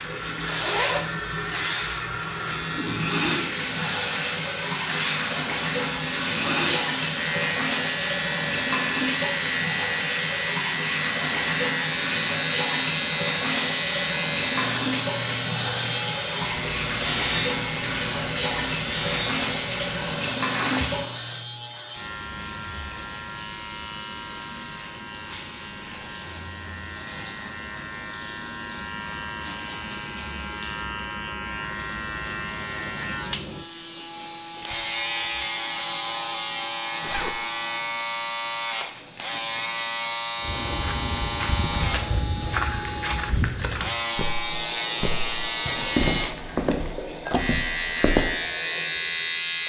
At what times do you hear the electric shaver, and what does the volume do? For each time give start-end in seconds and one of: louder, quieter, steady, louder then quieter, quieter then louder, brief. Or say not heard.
0.0-49.6 quieter then louder.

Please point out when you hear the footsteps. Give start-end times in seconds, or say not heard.
40.4-48.3.